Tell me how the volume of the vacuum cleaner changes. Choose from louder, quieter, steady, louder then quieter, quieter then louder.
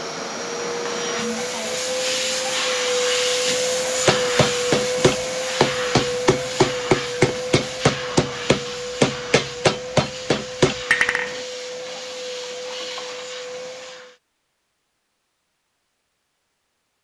quieter.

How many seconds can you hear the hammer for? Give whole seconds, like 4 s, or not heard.
7 s.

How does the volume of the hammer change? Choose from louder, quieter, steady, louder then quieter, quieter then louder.
steady.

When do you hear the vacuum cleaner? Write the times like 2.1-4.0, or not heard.
0.0-14.2.